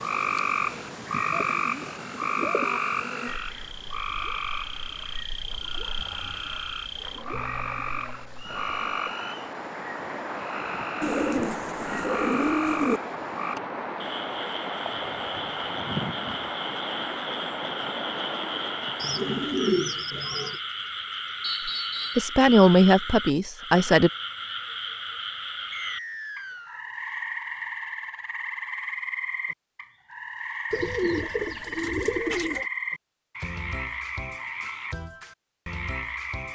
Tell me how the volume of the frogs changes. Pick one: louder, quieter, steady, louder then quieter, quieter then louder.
steady.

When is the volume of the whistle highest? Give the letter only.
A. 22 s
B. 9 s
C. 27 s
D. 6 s
A.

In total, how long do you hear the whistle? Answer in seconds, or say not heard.
3 s.